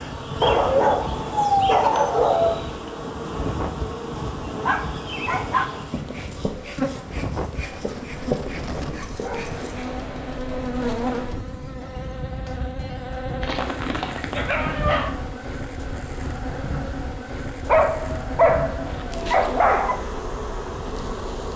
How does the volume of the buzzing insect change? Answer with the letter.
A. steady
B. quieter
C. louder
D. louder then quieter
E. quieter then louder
A.